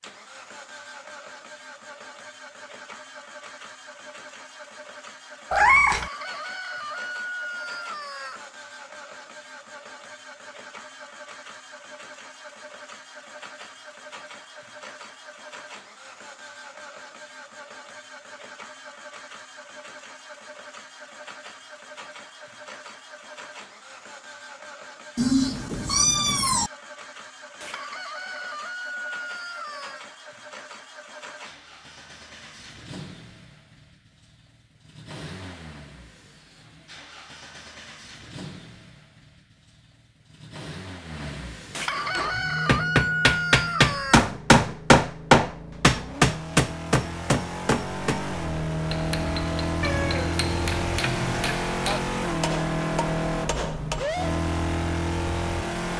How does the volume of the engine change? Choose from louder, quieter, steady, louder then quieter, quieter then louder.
louder.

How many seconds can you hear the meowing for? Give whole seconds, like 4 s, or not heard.
4 s.